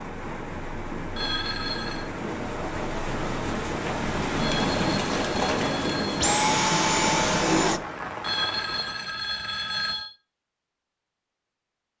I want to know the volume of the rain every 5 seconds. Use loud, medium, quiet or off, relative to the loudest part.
loud, loud, off.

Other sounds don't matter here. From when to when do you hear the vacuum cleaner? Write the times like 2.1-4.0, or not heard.
5.2-7.8.